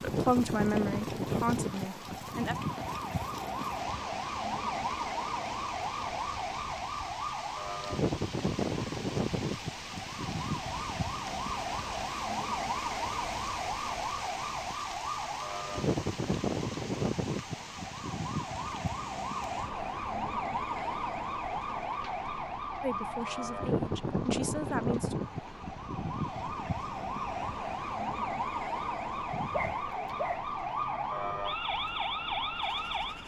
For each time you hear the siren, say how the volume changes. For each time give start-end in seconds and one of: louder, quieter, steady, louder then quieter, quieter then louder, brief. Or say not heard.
0.0-33.2 steady.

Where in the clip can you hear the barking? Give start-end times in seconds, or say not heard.
29.3-30.5.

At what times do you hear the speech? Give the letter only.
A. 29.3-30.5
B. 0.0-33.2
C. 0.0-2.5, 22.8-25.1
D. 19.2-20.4
C.